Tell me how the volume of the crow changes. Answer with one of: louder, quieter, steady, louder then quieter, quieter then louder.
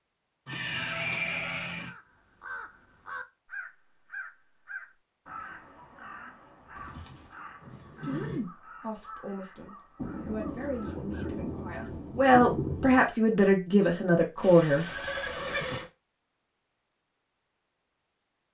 quieter.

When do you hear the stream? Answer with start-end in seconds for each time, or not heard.
not heard.